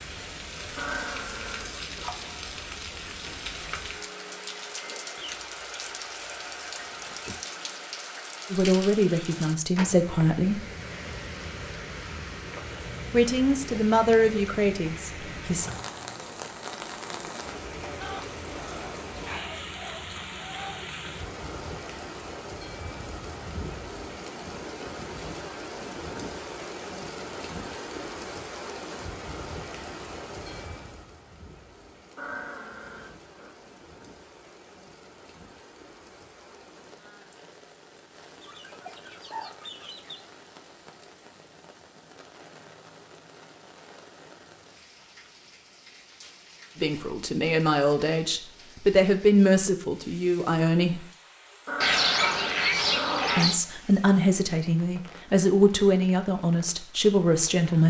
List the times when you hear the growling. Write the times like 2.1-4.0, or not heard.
0.8-2.1, 32.1-33.5, 51.6-53.5.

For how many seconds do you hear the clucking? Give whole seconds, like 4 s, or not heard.
9 s.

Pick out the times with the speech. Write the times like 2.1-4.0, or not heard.
8.5-10.7, 13.1-15.7, 46.8-51.0, 53.4-57.8.